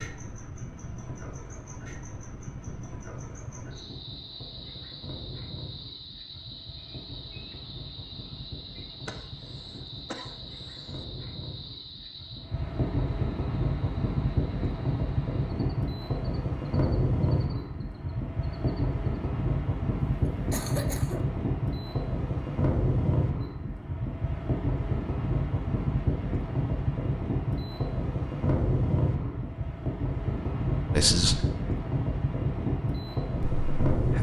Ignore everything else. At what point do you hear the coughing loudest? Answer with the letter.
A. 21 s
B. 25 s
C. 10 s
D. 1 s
A.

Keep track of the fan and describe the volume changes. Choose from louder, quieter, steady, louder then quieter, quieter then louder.
louder.